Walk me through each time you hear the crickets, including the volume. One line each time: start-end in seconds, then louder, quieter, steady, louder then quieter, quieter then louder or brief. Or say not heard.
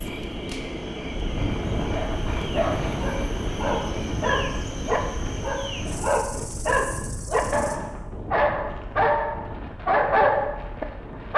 0.0-7.8 quieter.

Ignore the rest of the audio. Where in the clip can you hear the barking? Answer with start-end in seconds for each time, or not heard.
1.9-11.3.